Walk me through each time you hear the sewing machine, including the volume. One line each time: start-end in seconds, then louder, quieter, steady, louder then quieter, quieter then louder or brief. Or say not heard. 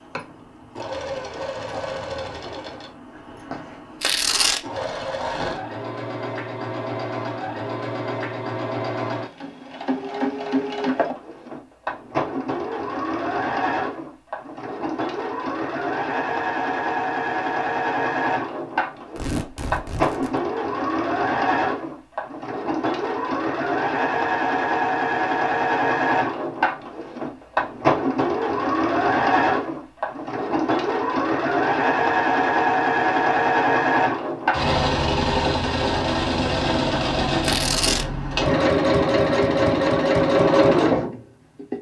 0.0-41.7 louder.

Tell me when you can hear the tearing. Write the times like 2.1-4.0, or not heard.
4.0-4.6, 19.1-20.4, 37.4-38.0.